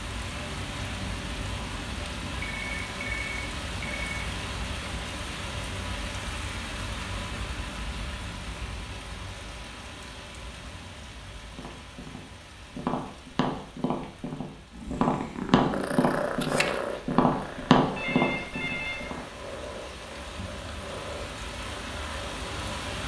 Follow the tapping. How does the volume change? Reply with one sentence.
The volume of the tapping goes up.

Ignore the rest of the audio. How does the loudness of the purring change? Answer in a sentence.
The volume of the purring goes down.